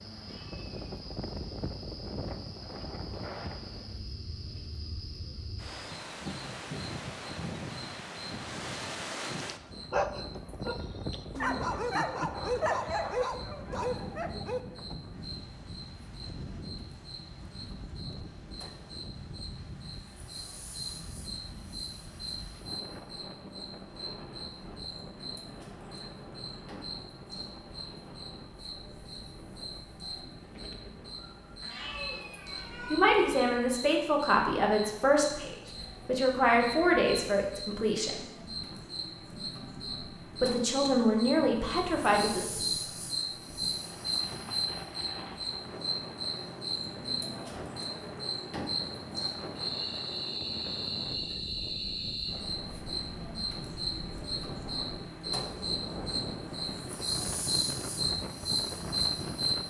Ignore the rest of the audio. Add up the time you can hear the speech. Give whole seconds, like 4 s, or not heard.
7 s.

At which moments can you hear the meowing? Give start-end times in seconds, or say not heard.
0.1-0.7, 31.6-33.0.